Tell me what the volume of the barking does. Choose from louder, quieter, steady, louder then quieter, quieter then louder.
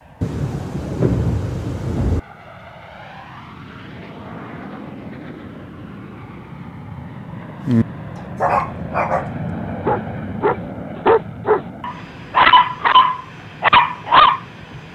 louder.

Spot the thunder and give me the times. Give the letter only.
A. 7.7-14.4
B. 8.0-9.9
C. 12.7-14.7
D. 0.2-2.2
D.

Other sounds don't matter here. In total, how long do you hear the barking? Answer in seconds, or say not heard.
7 s.